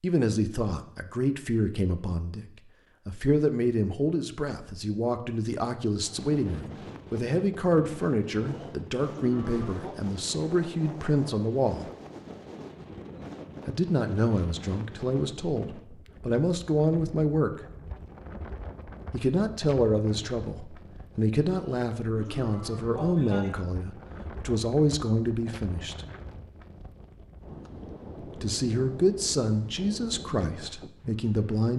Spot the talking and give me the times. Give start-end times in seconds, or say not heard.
0.0-2.5, 3.0-11.9, 13.7-17.5, 19.1-26.1, 28.4-31.7.